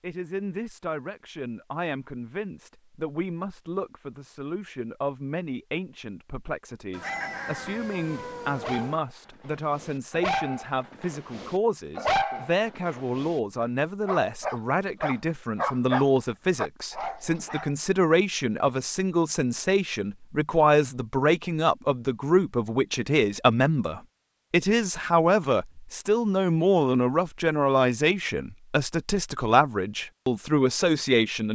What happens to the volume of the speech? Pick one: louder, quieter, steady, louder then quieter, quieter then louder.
louder.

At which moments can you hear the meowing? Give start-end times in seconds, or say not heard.
6.9-9.0.